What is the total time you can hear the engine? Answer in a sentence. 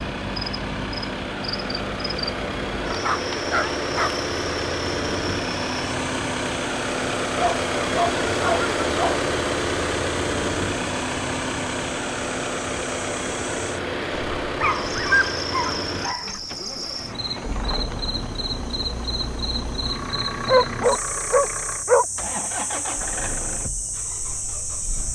You can hear the engine for 25 seconds altogether.